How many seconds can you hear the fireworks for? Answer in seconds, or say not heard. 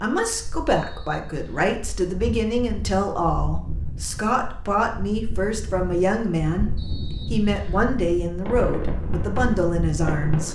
2 s.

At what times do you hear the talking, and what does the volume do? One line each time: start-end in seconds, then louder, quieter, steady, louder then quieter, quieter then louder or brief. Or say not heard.
0.0-10.5 steady.